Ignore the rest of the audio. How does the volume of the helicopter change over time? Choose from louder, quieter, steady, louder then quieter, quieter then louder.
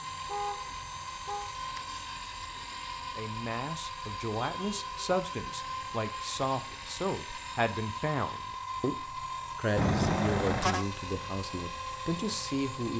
steady.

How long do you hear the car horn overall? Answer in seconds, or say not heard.
3 s.